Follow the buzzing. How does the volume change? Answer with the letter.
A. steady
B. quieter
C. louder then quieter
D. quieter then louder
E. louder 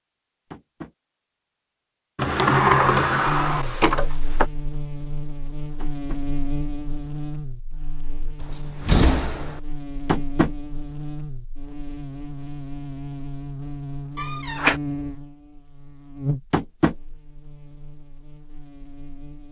A.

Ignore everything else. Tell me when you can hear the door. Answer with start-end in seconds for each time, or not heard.
2.1-4.5, 8.4-9.6, 14.2-14.8.